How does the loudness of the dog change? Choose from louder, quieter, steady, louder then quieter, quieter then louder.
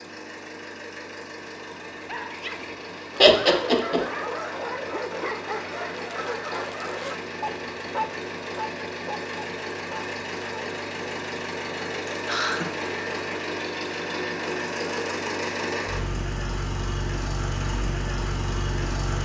steady.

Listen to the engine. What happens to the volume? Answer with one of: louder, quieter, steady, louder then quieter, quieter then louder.
louder.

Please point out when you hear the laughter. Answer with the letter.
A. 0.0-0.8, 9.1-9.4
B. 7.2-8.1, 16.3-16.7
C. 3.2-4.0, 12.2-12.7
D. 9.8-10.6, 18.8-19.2
C.